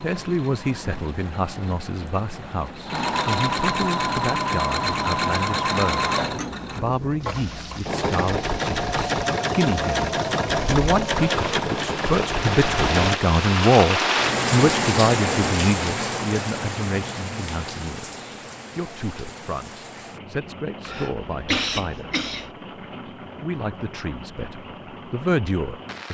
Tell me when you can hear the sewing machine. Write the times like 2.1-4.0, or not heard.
0.0-13.2.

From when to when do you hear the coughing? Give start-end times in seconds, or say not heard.
20.9-22.5.